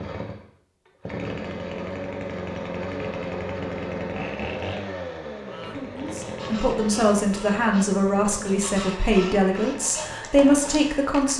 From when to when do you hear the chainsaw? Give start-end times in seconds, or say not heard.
0.0-11.3.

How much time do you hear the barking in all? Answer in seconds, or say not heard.
not heard.